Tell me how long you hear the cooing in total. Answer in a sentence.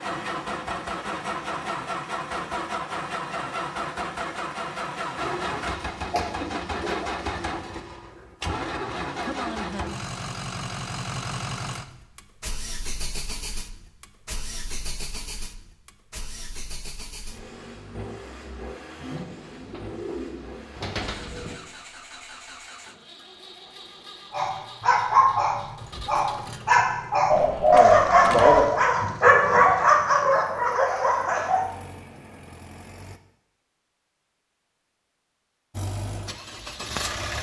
You can hear the cooing for 5 seconds altogether.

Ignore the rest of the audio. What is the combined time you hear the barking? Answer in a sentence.
The barking can be heard for 7 seconds in total.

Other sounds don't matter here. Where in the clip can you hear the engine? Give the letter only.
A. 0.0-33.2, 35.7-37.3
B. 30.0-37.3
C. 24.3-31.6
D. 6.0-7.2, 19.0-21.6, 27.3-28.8
A.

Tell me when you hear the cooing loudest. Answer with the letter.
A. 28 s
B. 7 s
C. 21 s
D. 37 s
A.